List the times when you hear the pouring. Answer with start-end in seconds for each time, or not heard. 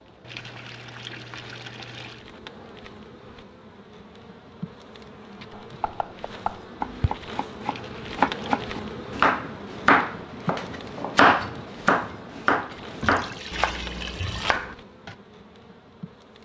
0.2-2.2, 7.6-8.8, 13.0-14.6.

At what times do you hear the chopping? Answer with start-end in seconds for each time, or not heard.
5.5-15.2.